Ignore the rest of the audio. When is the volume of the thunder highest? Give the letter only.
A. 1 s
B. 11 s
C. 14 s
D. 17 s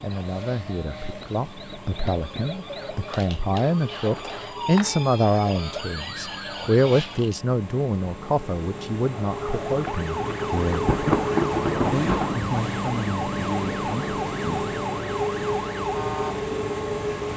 B.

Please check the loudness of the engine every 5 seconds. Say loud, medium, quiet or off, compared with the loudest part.
quiet, medium, loud, loud.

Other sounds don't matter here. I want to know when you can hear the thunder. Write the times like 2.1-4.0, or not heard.
9.8-12.5.